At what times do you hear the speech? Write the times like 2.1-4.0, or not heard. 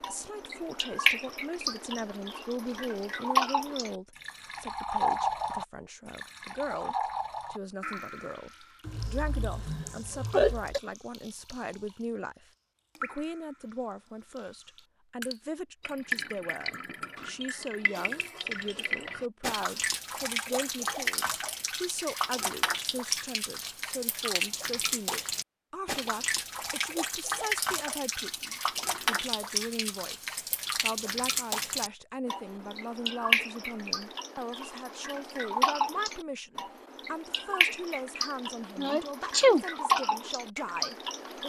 0.1-41.4.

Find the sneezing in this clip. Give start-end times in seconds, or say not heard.
8.8-10.8, 38.8-39.6.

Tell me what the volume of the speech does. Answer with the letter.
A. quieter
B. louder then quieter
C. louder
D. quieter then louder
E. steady
E.